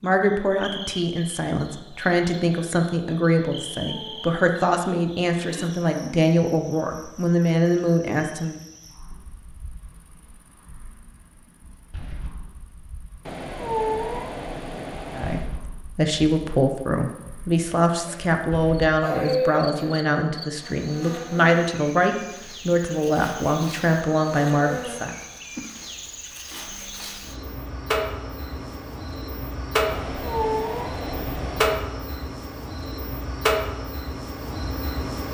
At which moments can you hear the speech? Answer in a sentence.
The speech can be heard from 0.0 to 8.6 s and from 15.2 to 25.1 s.